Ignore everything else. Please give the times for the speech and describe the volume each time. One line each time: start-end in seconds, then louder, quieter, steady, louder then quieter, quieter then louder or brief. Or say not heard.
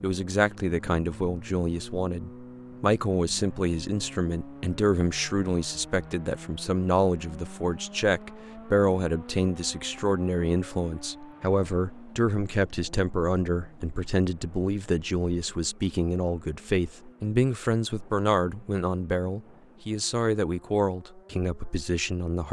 0.0-22.4 steady.